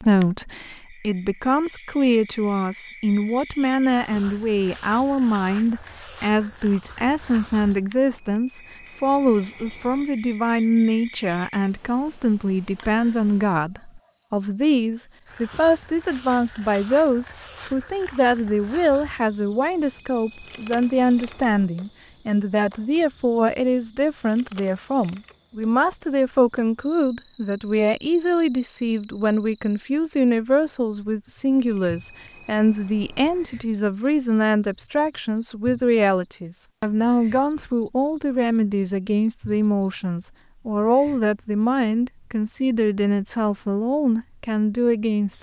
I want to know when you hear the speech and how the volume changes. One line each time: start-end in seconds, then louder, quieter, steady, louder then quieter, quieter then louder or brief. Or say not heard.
0.0-45.3 steady.